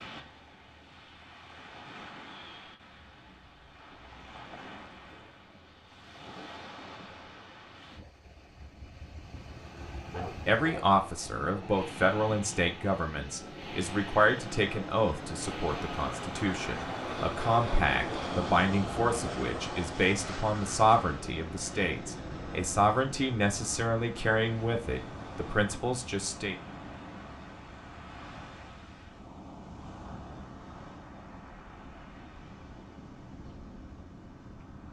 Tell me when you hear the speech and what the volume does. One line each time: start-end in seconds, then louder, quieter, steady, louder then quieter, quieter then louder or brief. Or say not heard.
10.2-26.6 steady.